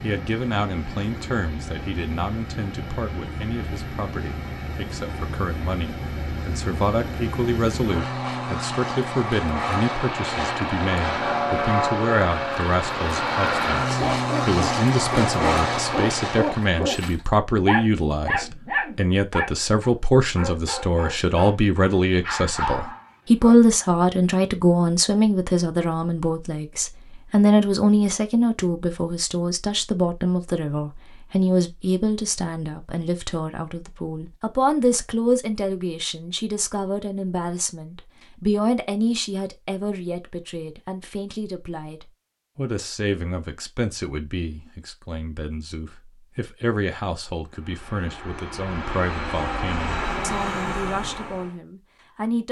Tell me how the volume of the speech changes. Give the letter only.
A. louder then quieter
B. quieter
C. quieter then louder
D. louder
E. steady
A.